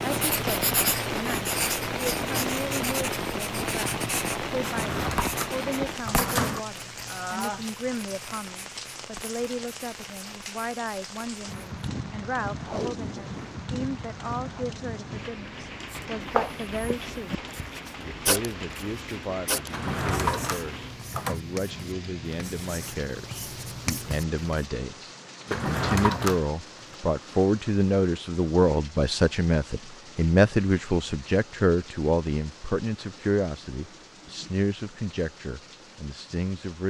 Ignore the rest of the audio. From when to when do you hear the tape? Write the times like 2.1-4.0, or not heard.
12.6-13.7.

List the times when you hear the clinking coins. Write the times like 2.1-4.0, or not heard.
not heard.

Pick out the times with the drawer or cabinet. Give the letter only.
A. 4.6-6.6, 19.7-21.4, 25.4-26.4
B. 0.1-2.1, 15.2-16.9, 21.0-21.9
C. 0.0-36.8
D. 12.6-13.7
A.